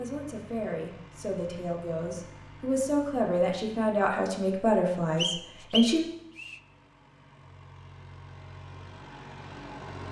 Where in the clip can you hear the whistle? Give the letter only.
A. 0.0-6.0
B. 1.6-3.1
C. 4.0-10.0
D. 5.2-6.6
D.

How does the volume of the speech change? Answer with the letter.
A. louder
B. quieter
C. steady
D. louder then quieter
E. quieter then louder
A.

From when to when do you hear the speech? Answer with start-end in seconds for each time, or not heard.
0.0-6.0.